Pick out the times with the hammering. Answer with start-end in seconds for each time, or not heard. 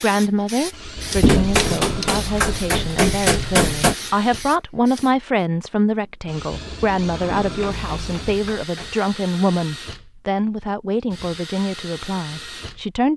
1.1-4.0, 7.2-9.0.